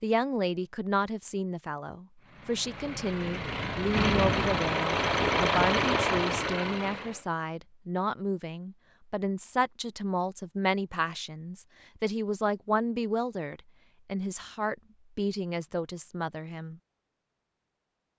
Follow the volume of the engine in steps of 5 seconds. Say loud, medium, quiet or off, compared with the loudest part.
loud, loud, off, off.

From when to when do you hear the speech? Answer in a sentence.
The speech can be heard from 0.0 to 16.8 s.